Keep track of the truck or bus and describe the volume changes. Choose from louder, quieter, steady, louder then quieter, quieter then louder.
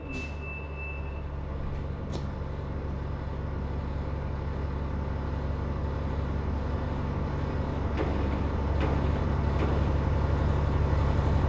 louder.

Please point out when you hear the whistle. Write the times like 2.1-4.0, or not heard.
not heard.